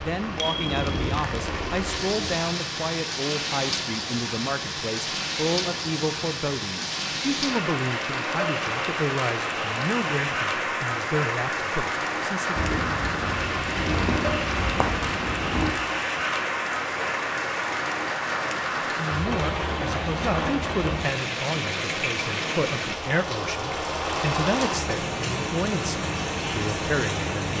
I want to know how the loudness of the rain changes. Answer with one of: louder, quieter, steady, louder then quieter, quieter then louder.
steady.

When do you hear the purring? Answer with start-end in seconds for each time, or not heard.
0.1-2.4, 12.6-15.7.